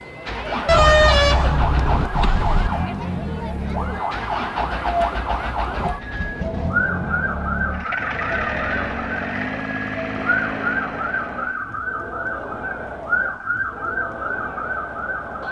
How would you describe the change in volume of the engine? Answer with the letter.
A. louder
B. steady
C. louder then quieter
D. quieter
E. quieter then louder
B.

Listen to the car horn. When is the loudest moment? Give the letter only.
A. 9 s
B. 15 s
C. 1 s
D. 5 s
C.